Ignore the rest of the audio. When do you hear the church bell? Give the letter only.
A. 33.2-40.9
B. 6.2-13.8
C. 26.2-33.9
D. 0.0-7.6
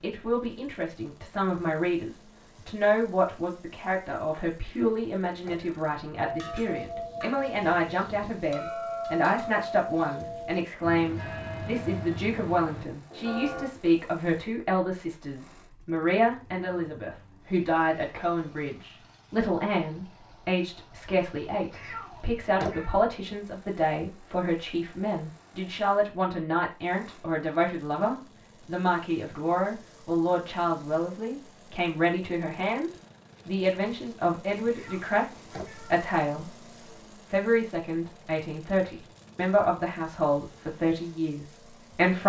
B.